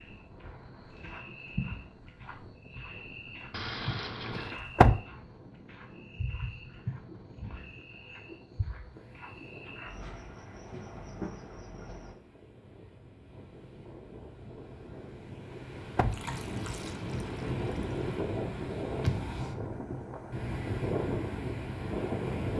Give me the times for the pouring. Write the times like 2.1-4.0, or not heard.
3.5-4.5, 16.1-18.0.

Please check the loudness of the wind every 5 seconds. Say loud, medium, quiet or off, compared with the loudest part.
quiet, quiet, quiet, loud, loud.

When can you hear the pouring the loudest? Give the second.
4 s.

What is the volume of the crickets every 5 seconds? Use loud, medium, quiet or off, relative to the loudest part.
loud, loud, loud, off, off.